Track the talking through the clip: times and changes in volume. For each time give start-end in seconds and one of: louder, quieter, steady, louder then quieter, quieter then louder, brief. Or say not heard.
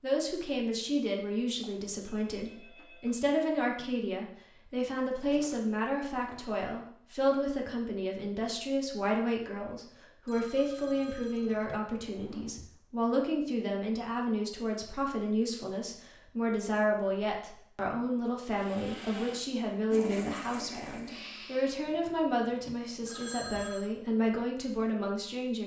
0.0-25.6 steady.